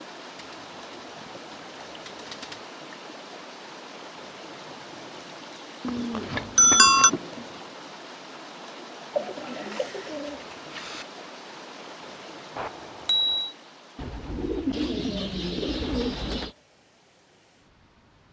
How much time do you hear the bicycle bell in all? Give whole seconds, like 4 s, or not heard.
2 s.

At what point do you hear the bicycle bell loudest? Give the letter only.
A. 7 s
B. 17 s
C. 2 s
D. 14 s
A.